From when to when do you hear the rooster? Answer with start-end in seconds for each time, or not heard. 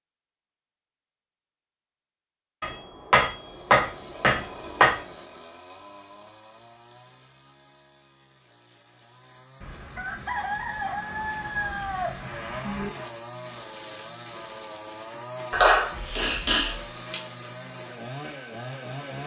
9.6-12.9.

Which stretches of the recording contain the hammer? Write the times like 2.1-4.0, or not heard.
2.6-5.0, 15.5-17.2.